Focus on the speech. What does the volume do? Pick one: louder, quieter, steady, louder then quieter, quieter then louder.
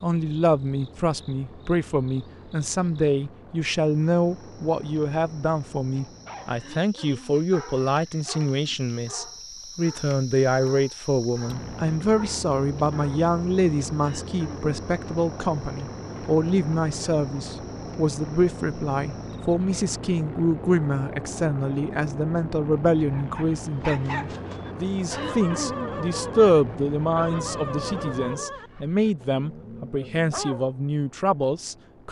steady.